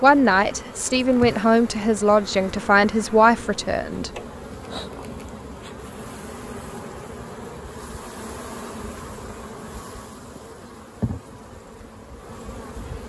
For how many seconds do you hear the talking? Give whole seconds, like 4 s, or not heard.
4 s.